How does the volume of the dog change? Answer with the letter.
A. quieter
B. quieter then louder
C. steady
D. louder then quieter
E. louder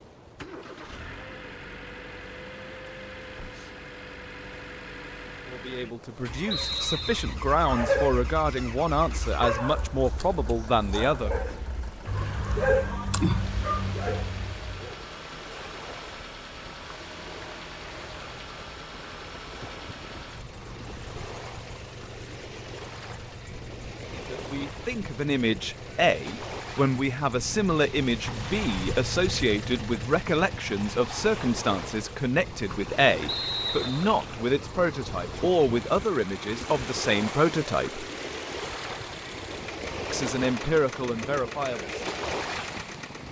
B.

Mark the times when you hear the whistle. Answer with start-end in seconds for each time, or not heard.
6.5-7.3, 33.2-34.1.